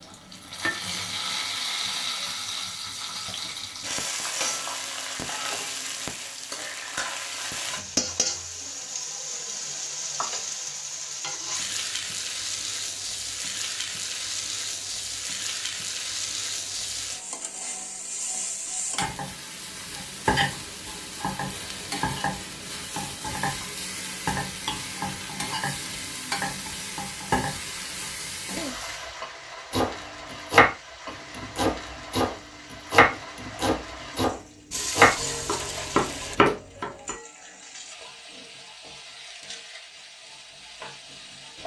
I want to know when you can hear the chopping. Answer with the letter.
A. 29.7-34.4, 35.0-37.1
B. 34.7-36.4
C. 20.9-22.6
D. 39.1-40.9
A.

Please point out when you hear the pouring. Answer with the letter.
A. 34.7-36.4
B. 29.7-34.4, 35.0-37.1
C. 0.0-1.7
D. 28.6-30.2
A.